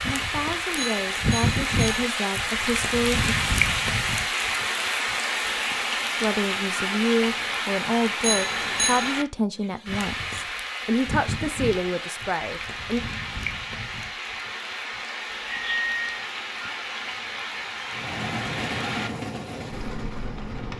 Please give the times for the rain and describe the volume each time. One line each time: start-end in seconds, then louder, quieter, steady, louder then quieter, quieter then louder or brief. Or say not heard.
0.0-20.7 quieter.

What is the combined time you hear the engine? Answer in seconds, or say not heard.
3 s.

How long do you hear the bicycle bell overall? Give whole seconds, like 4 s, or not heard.
3 s.